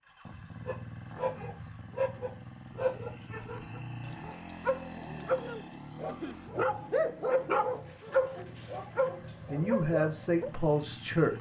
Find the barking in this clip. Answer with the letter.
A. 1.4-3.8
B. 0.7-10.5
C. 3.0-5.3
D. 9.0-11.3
B.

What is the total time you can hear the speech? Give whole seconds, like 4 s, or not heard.
2 s.